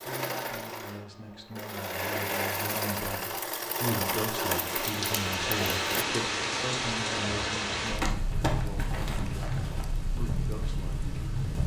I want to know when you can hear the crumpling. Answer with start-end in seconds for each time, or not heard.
8.0-9.8.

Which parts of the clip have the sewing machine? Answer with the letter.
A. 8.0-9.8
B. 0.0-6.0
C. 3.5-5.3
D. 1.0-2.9
B.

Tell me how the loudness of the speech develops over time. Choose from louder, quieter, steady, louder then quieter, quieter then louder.
louder then quieter.